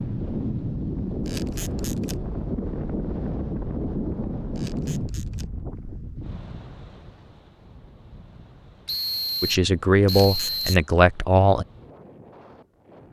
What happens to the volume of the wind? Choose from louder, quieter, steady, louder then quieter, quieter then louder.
quieter.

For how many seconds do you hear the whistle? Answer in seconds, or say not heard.
2 s.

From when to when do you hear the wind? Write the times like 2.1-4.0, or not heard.
0.0-13.0.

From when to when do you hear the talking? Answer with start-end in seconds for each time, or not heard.
9.4-11.7.